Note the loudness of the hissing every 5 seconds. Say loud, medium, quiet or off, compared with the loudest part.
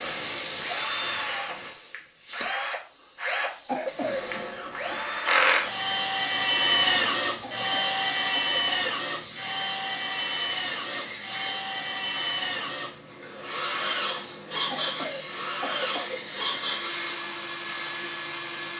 loud, medium, loud, loud.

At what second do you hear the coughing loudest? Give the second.
4 s.